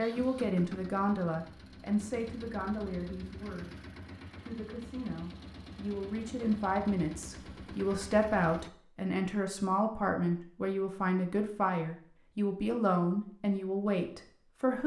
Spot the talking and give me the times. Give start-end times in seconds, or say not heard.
0.0-14.8.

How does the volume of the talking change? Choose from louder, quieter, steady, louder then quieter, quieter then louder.
quieter then louder.